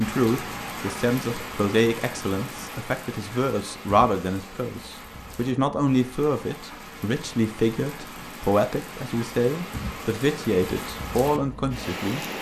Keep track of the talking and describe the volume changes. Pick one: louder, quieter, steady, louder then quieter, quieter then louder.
steady.